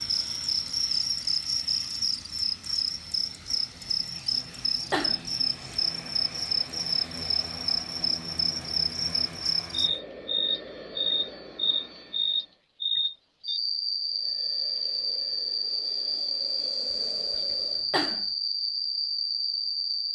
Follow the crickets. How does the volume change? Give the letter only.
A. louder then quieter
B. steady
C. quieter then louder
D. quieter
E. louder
B.